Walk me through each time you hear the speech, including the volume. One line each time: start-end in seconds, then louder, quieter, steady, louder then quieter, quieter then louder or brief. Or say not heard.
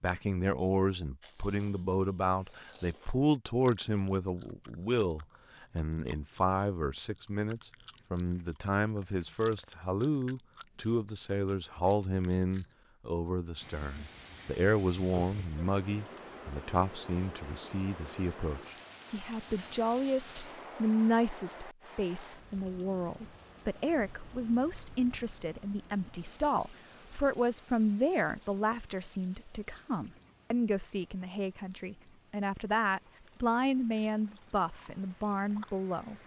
0.0-36.1 steady.